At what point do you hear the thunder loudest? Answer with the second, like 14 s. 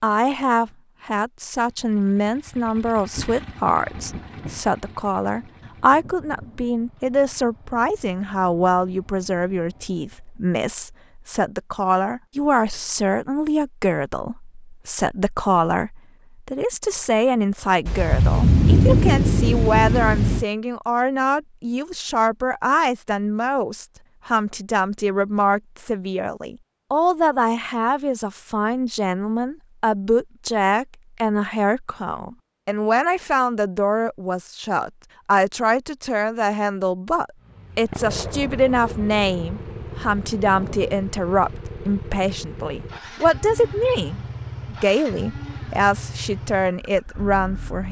19 s.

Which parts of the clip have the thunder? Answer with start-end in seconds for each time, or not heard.
3.0-6.7, 17.9-20.4, 38.0-41.0.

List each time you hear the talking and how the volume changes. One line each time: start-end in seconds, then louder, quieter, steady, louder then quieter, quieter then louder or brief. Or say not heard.
0.0-47.8 steady.